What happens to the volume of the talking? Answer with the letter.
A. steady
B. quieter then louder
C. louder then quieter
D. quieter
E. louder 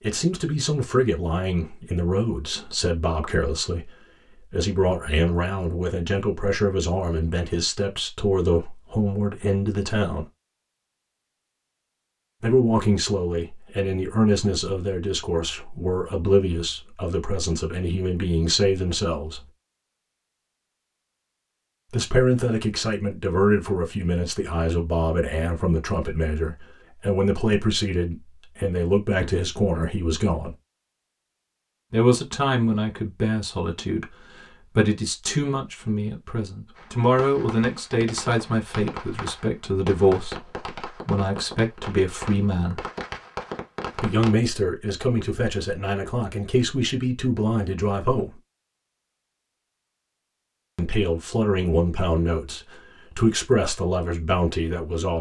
A.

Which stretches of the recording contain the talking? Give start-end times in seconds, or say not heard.
0.0-10.2, 12.4-19.4, 21.9-30.6, 31.9-42.9, 44.0-48.4, 50.8-55.1.